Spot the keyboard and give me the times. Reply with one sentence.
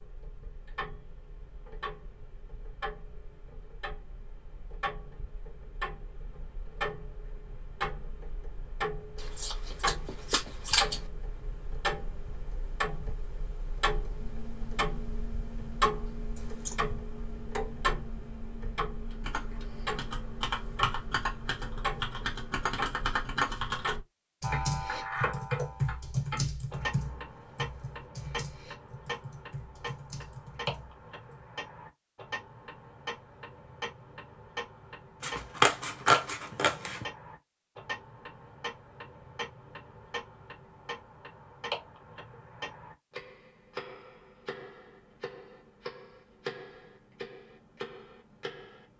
You can hear the keyboard from 19.1 to 31.5 s.